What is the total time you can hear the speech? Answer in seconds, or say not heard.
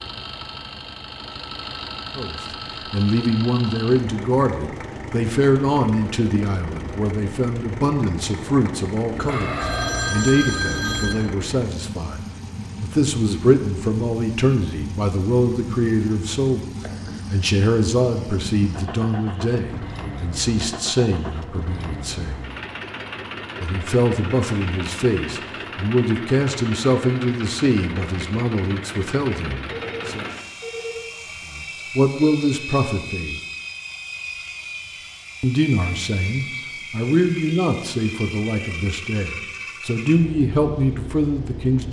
34 s.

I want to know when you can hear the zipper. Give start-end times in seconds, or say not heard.
not heard.